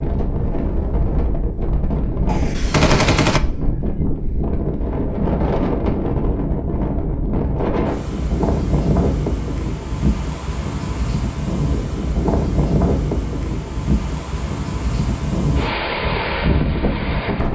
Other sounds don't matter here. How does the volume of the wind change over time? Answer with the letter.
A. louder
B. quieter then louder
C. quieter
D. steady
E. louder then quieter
D.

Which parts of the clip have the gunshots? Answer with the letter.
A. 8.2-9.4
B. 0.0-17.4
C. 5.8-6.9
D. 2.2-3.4
D.